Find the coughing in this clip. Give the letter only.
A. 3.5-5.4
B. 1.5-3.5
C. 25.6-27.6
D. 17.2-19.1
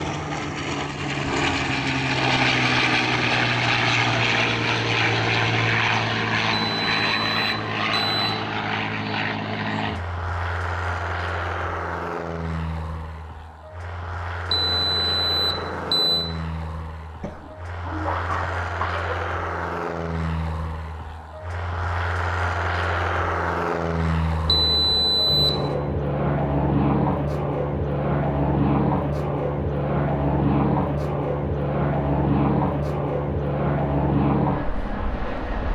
D.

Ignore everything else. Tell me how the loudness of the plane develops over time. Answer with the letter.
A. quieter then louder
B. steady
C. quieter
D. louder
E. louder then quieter
A.